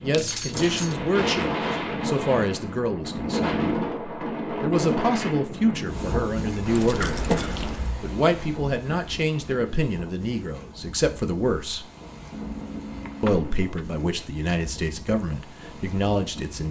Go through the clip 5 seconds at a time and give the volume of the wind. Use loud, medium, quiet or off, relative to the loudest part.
loud, medium, quiet, quiet.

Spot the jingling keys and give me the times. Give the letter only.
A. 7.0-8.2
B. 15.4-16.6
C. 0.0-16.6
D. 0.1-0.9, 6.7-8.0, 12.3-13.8
D.